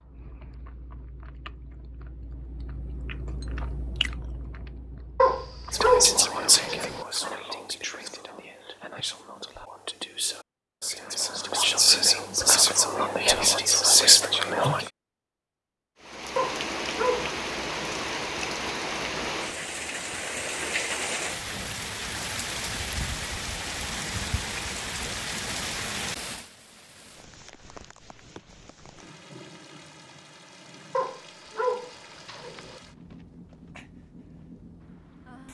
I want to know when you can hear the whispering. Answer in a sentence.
You can hear the whispering from 5.7 to 14.9 s.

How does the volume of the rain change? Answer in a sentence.
The loudness of the rain goes down.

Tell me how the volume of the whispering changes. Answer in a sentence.
The loudness of the whispering goes down, then up.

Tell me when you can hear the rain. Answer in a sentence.
The rain can be heard from 16.0 to 35.5 s.